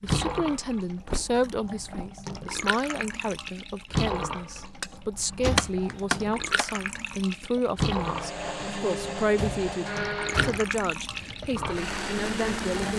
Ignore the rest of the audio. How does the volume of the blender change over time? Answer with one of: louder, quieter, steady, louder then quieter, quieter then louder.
quieter then louder.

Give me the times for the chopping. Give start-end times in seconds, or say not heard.
5.5-7.1.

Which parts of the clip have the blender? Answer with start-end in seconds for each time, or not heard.
8.0-12.9.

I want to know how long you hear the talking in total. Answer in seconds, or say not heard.
13 s.